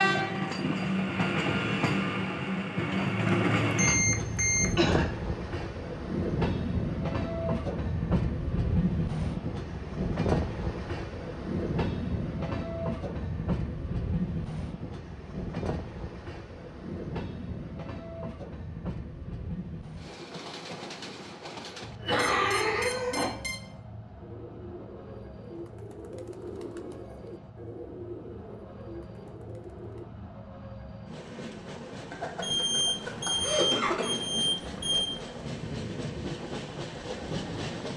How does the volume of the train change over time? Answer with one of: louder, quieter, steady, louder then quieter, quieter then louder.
quieter then louder.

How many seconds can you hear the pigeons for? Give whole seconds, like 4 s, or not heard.
6 s.